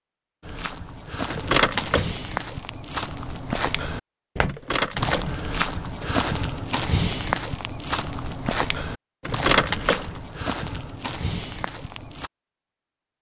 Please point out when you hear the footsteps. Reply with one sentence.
The footsteps can be heard from 0.4 to 12.3 s.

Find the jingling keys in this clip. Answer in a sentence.
You can hear the jingling keys from 1.3 to 2.1 s, from 4.5 to 6.2 s and from 9.2 to 10.2 s.